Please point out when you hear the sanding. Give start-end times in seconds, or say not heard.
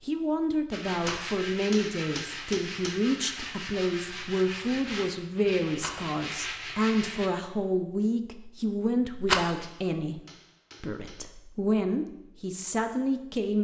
0.7-7.3.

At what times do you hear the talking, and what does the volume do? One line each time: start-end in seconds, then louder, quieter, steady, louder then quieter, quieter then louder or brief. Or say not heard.
0.0-10.2 steady
10.8-13.5 brief.